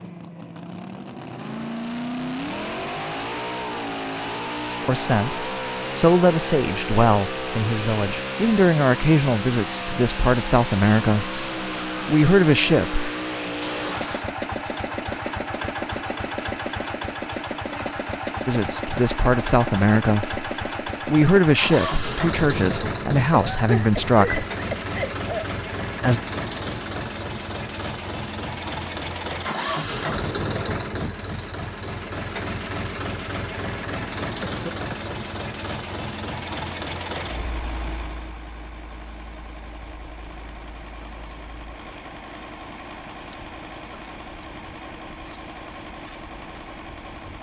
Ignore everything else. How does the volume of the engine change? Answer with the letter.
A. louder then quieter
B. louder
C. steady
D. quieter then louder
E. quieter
E.